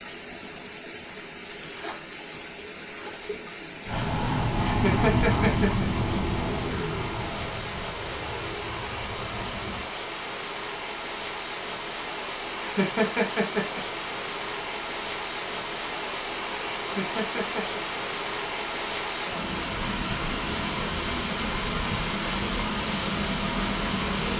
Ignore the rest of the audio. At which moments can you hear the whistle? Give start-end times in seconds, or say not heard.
not heard.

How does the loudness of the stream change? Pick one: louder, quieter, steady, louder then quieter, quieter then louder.
louder.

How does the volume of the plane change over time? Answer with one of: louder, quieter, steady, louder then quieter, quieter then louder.
quieter.